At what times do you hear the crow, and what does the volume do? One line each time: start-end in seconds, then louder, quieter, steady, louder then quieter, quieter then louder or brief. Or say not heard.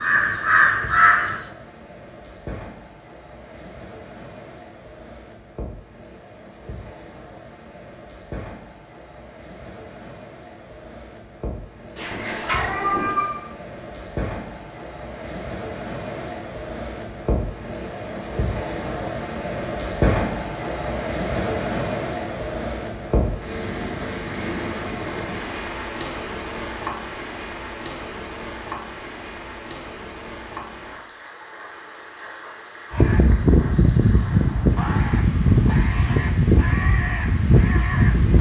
0.0-1.4 brief
32.9-38.3 steady.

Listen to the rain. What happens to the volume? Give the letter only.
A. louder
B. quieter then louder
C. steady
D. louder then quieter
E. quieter
D.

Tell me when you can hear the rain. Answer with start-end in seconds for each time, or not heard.
0.0-38.3.